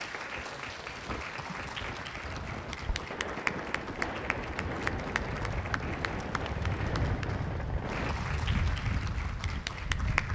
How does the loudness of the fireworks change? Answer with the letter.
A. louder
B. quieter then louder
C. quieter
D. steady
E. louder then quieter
D.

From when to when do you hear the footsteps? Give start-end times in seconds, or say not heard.
not heard.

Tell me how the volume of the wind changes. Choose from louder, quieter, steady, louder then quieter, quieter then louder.
louder.